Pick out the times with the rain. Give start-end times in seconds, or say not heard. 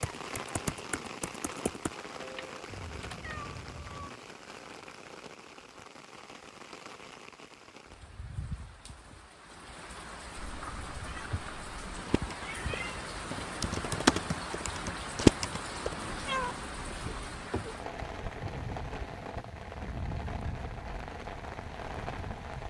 0.0-22.6.